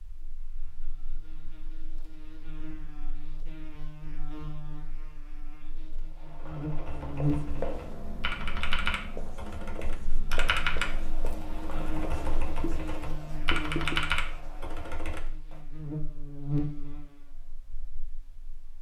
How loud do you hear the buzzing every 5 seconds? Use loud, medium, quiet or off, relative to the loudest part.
quiet, loud, medium, loud.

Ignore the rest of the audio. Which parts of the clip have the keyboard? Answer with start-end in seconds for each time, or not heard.
6.1-15.6.